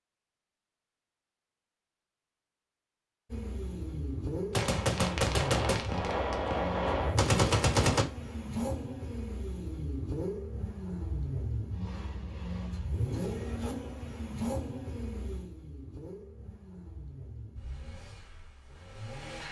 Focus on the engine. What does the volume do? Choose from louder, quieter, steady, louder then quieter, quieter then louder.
quieter.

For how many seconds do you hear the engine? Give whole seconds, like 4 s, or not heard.
16 s.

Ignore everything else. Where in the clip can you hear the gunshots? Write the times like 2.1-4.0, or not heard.
4.5-8.1.